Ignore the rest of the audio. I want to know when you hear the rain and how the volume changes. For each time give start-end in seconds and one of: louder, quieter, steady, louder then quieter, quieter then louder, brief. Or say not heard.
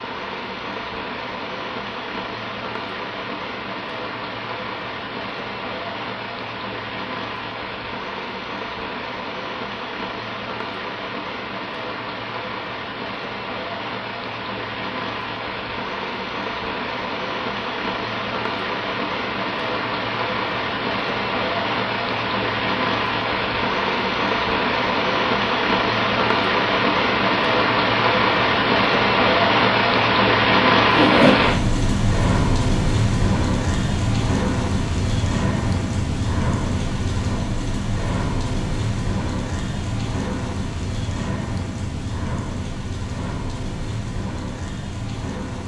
0.0-45.6 louder then quieter.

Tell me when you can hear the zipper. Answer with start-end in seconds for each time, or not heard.
30.9-31.4.